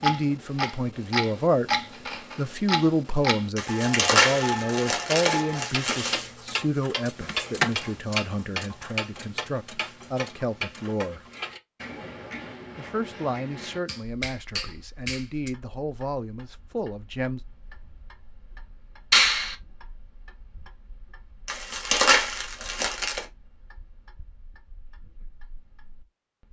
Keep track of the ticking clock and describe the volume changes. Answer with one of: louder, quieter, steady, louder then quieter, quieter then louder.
quieter.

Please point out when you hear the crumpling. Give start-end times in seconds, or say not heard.
3.5-6.2, 21.4-23.2.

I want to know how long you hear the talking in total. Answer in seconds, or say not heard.
15 s.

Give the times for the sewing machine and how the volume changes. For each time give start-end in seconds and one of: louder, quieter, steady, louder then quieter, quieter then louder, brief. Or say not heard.
not heard.